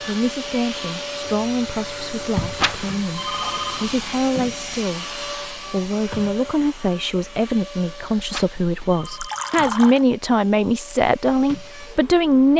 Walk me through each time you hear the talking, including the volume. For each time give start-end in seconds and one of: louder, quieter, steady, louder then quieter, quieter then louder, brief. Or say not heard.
0.1-12.5 louder.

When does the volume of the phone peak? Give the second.
3 s.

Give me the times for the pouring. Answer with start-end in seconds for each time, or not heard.
9.0-10.1.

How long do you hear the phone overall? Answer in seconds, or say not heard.
3 s.